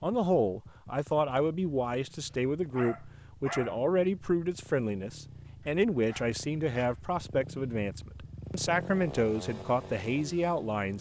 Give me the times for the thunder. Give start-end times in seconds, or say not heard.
not heard.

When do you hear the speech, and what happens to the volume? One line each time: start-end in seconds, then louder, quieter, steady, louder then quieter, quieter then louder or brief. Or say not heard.
0.0-10.9 steady.